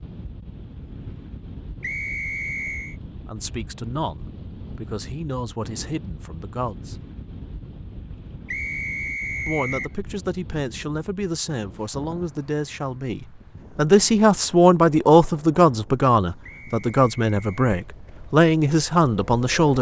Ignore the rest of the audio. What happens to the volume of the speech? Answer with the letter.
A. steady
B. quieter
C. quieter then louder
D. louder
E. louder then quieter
D.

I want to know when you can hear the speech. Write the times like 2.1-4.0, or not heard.
3.2-7.0, 9.4-19.7.